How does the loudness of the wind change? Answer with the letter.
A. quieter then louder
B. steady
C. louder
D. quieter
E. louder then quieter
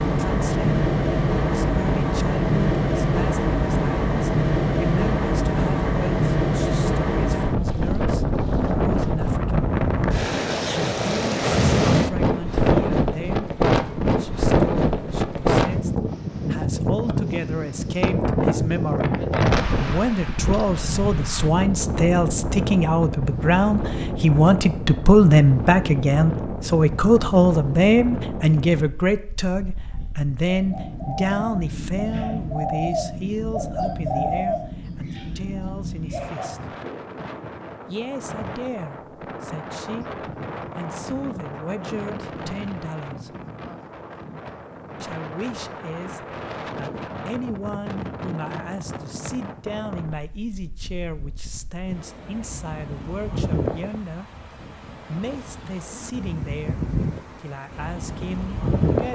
D.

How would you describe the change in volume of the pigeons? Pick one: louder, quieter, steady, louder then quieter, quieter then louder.
louder then quieter.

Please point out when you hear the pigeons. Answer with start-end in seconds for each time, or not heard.
29.9-37.7.